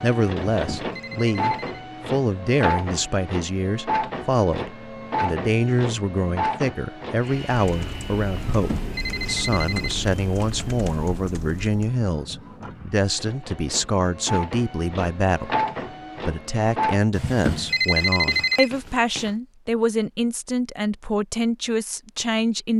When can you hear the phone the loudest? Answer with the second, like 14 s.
18 s.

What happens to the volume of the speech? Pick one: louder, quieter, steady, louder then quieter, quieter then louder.
steady.